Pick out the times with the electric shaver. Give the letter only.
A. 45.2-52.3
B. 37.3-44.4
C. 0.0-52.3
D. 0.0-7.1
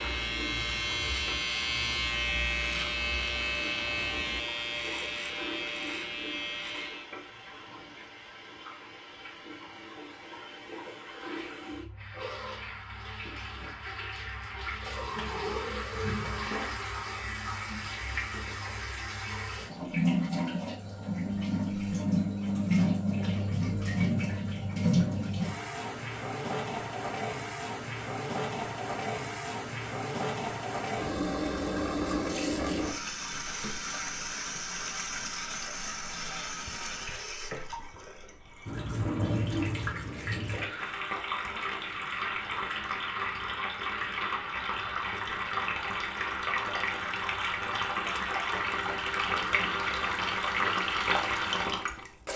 D.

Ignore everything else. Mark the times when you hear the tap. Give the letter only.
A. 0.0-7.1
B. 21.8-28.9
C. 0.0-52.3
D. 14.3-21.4
C.